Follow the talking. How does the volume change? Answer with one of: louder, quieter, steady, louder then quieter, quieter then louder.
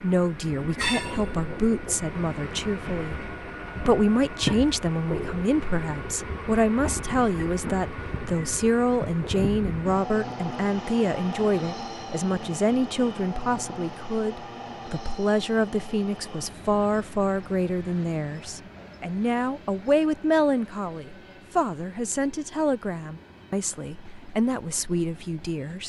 steady.